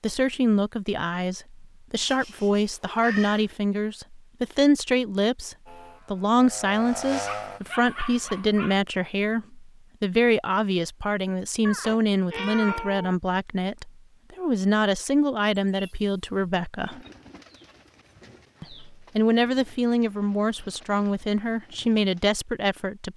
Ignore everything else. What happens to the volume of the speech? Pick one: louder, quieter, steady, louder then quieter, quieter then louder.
steady.